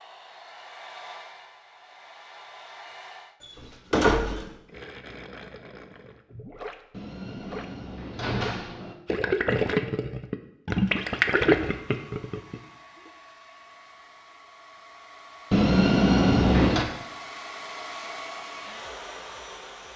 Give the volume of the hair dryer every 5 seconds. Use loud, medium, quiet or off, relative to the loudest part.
medium, off, medium, loud.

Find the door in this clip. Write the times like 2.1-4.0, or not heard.
3.4-4.5, 6.9-8.9, 15.5-16.9.